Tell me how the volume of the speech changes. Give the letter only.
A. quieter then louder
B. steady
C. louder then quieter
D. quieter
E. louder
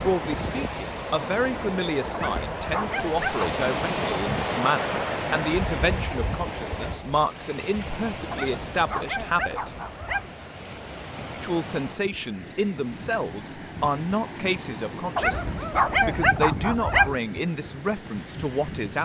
B.